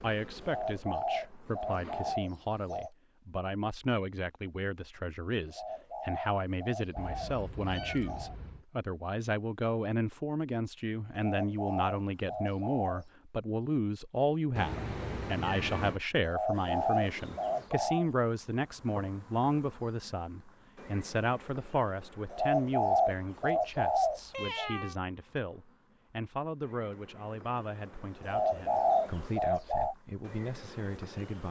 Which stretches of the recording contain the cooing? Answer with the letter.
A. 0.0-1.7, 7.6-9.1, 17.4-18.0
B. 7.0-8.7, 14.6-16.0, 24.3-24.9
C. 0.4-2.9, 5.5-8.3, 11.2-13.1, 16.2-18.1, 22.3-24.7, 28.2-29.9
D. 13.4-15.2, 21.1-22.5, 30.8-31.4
C.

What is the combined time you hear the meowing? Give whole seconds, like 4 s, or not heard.
4 s.